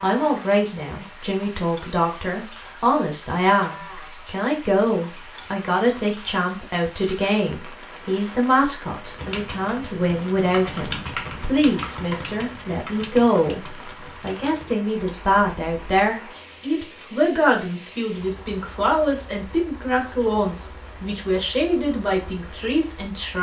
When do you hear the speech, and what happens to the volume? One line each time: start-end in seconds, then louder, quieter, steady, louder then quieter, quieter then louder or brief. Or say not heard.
0.0-23.3 steady.